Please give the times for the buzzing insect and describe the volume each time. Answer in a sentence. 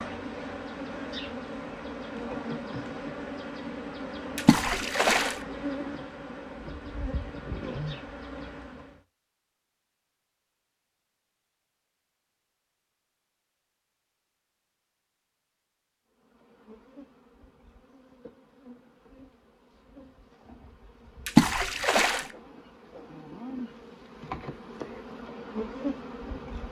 The buzzing insect can be heard from 0.0 to 9.0 s, at a steady volume; and from 16.1 to 26.6 s, getting louder.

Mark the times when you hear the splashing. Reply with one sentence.
You can hear the splashing from 4.3 to 5.3 s and from 21.2 to 22.2 s.